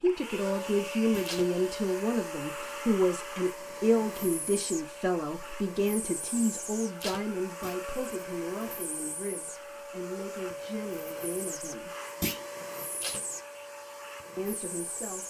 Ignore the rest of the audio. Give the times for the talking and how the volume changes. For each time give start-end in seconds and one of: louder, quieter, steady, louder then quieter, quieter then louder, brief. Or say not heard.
0.0-11.9 quieter
14.3-15.2 brief.